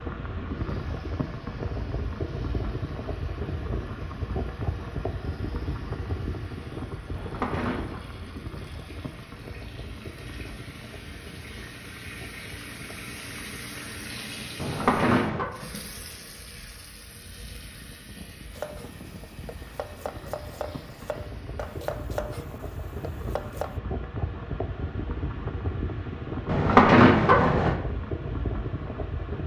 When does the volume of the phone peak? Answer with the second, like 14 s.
27 s.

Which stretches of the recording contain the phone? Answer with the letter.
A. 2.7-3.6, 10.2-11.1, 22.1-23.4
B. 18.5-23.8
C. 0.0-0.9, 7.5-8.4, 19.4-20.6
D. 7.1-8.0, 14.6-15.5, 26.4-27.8
D.